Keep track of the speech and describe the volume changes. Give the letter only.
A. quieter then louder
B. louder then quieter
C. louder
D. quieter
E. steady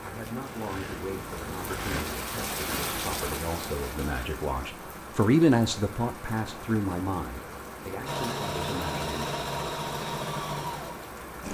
B.